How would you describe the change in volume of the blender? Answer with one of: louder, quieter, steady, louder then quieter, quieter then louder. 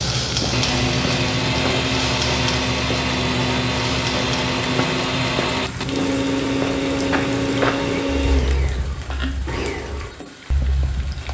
quieter.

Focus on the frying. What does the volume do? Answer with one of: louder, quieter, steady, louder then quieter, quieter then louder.
quieter.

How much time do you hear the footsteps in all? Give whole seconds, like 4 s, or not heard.
11 s.